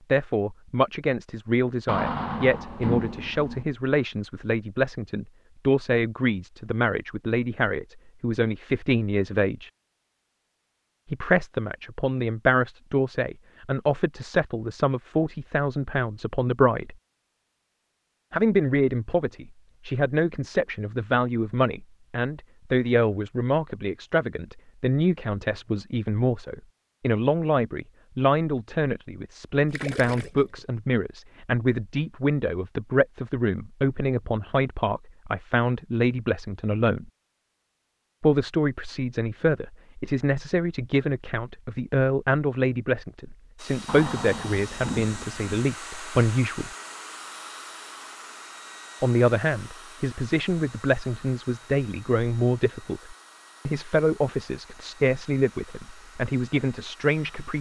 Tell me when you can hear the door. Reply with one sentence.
The door can be heard from 1.9 to 3.6 s and from 43.9 to 45.6 s.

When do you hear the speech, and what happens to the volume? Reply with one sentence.
The speech can be heard from 0.1 to 9.7 s, at a steady volume; from 11.1 to 16.9 s, at a steady volume; from 18.3 to 37.1 s, at a steady volume; from 38.2 to 46.7 s, at a steady volume; and from 49.0 to 57.5 s, at a steady volume.